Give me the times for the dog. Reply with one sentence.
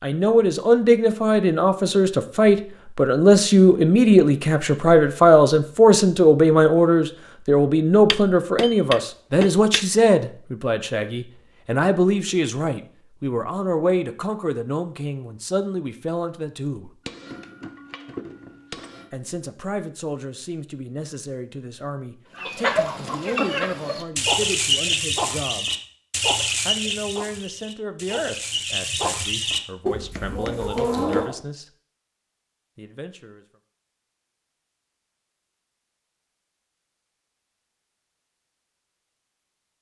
You can't hear the dog here.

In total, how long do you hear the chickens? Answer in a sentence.
You can hear the chickens for 9 seconds altogether.